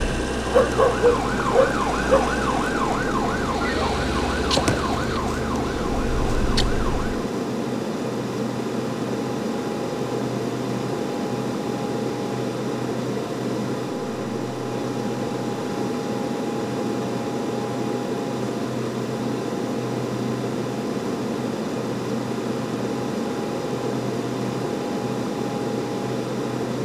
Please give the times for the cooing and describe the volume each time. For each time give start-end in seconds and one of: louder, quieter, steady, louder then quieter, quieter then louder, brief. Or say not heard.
not heard.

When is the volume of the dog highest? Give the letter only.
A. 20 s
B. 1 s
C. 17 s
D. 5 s
B.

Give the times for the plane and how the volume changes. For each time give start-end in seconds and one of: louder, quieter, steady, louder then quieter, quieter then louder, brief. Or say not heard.
0.0-26.8 steady.